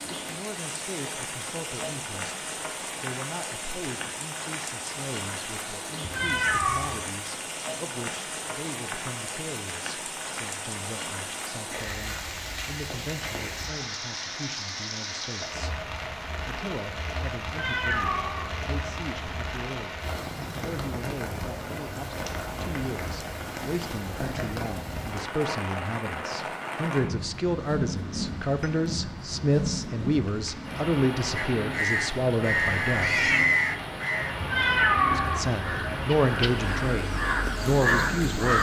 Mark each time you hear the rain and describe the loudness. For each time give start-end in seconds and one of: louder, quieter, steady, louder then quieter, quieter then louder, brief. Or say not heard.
0.0-38.5 steady.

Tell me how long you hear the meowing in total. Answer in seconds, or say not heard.
5 s.